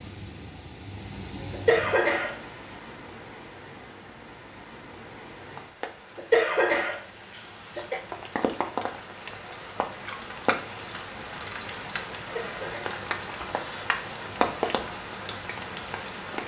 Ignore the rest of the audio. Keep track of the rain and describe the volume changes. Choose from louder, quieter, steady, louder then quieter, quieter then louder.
louder.